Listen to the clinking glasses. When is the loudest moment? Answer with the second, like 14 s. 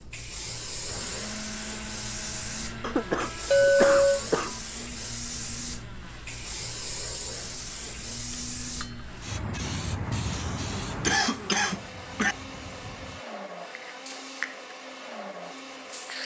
4 s.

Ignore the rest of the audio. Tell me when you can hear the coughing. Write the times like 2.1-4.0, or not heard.
2.8-4.6, 10.3-12.3.